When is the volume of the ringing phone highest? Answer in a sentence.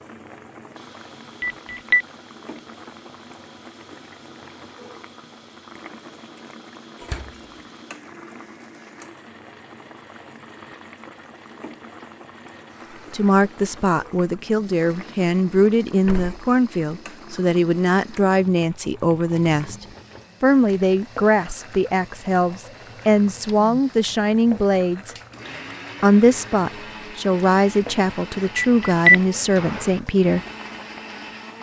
The loudest moment of the ringing phone is at 29 seconds.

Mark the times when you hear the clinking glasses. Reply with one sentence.
You can't hear the clinking glasses here.